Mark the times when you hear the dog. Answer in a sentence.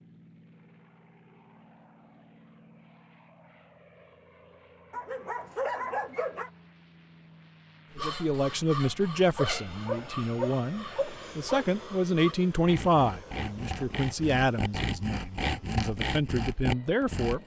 The dog can be heard from 4.9 to 6.5 s and from 9.3 to 11.7 s.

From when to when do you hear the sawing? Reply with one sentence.
The sawing can be heard from 7.9 to 17.4 s.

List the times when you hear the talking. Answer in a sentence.
The talking can be heard from 8.0 to 17.4 s.